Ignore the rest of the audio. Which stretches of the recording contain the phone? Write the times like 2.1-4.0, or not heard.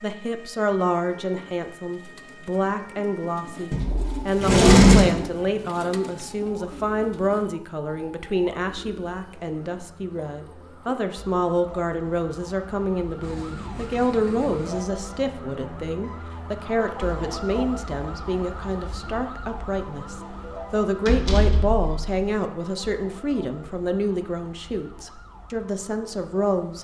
not heard.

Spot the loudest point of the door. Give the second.
5 s.